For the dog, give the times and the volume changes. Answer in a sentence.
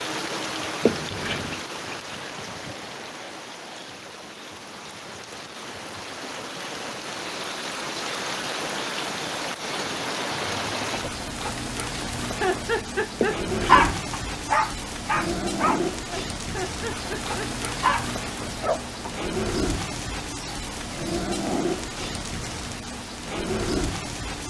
The dog can be heard from 12.4 to 19.3 s, getting quieter then louder.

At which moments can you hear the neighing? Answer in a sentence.
The neighing can be heard from 0.8 to 1.6 s and from 13.2 to 13.8 s.